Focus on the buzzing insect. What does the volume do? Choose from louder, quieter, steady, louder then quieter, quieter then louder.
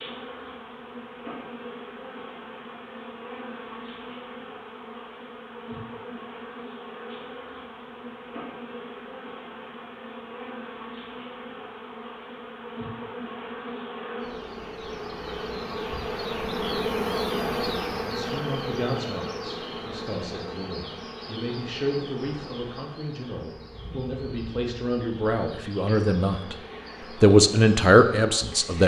louder then quieter.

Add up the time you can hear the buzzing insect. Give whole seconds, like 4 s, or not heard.
29 s.